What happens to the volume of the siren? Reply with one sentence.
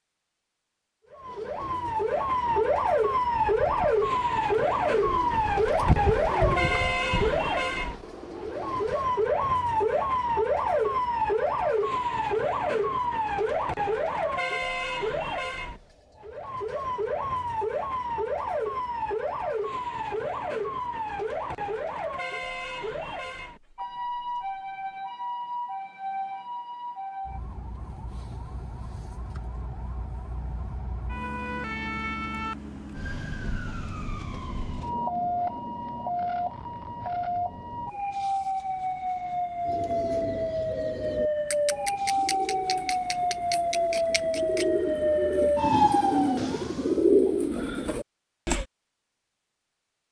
The volume of the siren goes down, then up.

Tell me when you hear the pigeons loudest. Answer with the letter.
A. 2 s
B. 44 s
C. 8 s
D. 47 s
D.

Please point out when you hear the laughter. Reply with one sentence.
The laughter can't be heard in this clip.